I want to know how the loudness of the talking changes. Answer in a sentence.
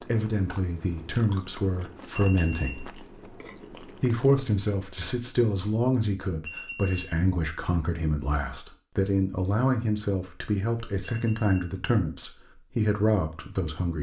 The loudness of the talking stays about the same.